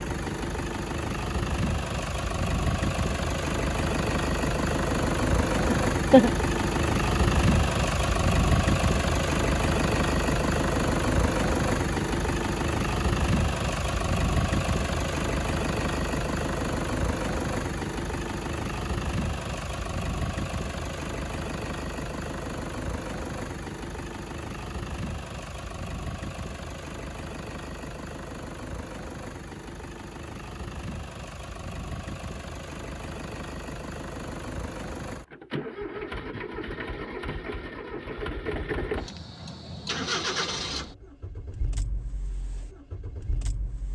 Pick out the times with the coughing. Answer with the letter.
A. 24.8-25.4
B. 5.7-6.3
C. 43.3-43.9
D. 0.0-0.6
B.